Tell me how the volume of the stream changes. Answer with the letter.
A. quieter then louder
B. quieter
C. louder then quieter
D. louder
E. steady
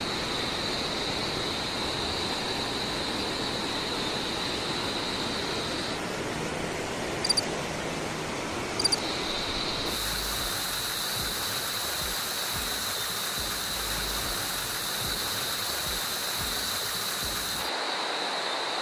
E.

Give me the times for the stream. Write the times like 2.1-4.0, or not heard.
0.0-18.7.